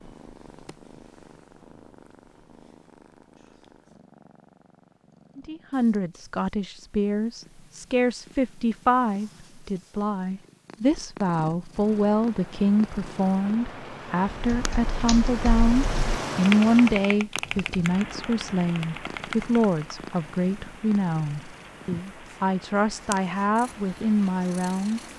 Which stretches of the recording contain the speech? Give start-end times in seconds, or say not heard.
5.3-25.0.